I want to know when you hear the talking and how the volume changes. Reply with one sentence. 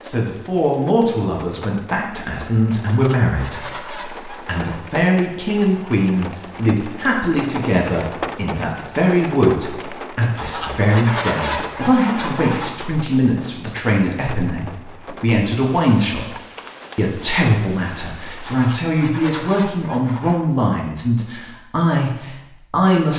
The talking can be heard from 0.0 to 16.2 s, at a steady volume; and from 16.9 to 23.1 s, at a steady volume.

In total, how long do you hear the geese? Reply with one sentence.
The geese can be heard for 6 seconds in total.